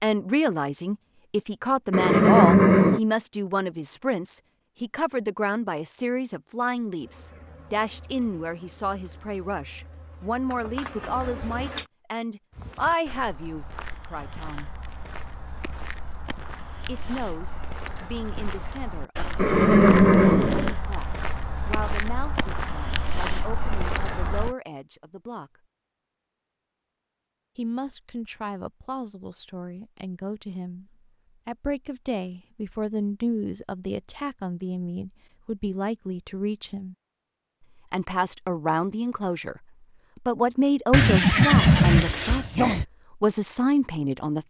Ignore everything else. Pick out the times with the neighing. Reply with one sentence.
You can hear the neighing from 1.9 to 3.0 s, from 19.4 to 20.8 s and from 40.9 to 42.9 s.